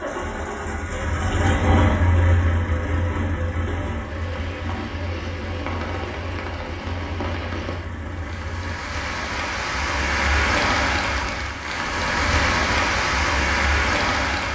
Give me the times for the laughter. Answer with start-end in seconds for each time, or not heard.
not heard.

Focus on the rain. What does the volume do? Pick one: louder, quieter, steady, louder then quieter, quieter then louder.
louder.